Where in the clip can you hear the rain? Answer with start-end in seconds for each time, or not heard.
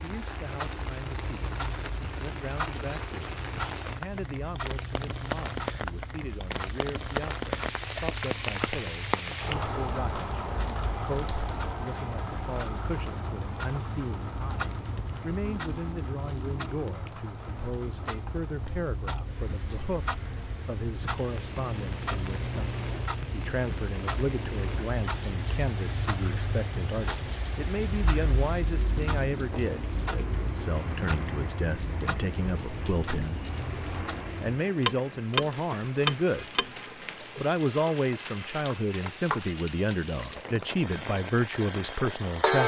0.0-42.6.